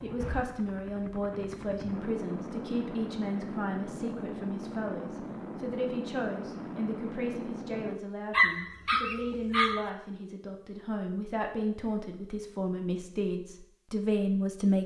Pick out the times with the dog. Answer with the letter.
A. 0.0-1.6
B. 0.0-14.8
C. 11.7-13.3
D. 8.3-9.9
D.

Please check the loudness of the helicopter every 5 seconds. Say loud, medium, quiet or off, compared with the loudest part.
loud, loud, off.